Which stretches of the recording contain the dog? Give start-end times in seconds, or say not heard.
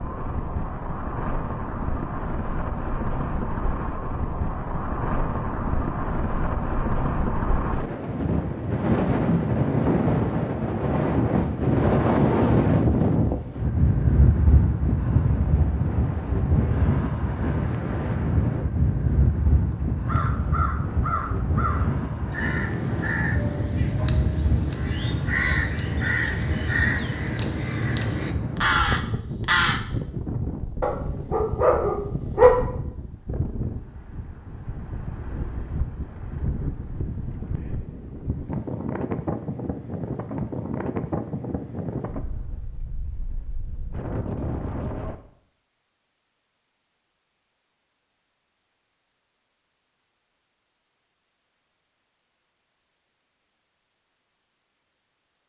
30.8-32.5.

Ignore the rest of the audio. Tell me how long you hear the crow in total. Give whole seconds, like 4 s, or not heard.
10 s.